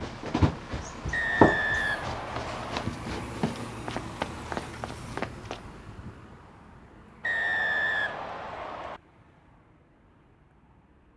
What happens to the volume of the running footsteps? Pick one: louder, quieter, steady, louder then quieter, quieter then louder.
louder then quieter.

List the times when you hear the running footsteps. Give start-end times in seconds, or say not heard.
0.0-5.6.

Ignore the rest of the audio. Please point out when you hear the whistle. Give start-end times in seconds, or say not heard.
1.1-2.9, 7.2-9.0.